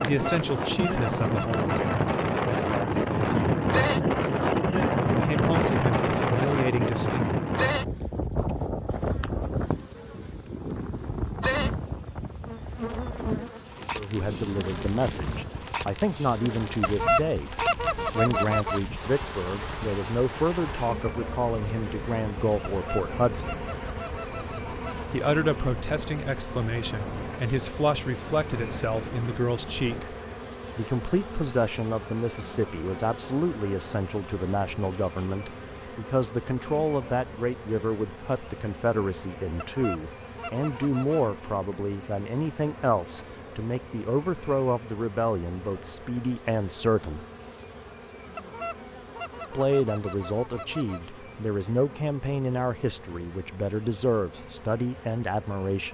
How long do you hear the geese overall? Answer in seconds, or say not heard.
11 s.